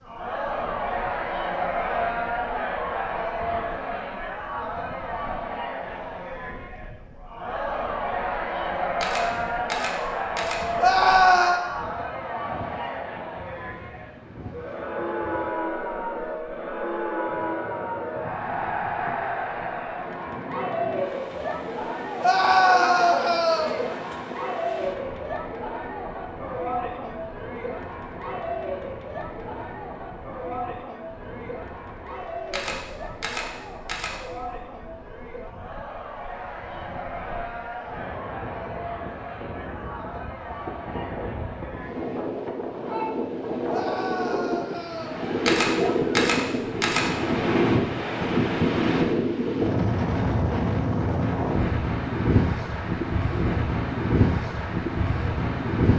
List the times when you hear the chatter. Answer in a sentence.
The chatter can be heard from 0.0 to 43.1 s.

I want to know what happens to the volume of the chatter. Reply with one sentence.
The loudness of the chatter goes down.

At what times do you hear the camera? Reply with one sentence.
You can hear the camera from 9.0 to 10.7 s, from 32.5 to 34.2 s and from 45.5 to 47.1 s.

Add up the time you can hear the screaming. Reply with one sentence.
You can hear the screaming for 4 seconds altogether.